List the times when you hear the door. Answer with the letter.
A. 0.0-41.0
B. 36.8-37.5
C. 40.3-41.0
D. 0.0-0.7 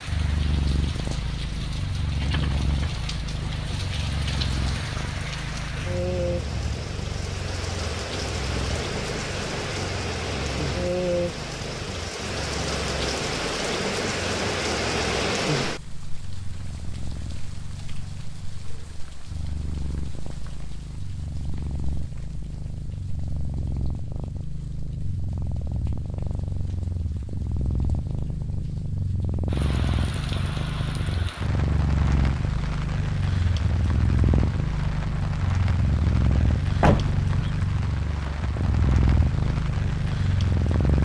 B.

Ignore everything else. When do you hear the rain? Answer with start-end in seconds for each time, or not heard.
0.0-41.0.